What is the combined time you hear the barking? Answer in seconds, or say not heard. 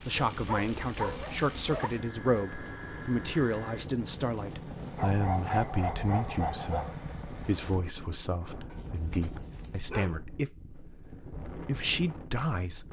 5 s.